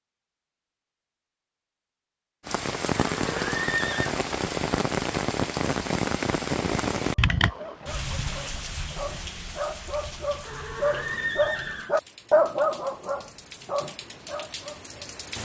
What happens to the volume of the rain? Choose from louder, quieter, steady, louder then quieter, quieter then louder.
quieter.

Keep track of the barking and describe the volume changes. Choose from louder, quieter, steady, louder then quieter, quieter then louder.
louder then quieter.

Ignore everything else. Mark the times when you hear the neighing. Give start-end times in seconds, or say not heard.
3.1-4.2, 10.4-11.9.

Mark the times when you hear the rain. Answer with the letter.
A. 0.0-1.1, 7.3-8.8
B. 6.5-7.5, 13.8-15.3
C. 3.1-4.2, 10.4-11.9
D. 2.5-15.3
D.